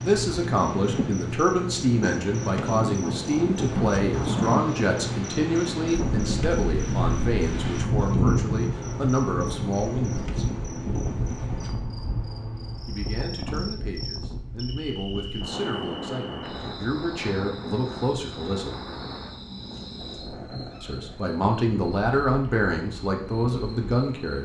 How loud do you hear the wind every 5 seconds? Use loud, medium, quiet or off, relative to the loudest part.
loud, loud, medium, medium, quiet.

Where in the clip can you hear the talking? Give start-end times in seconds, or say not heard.
0.0-10.4, 12.8-18.8, 20.8-24.4.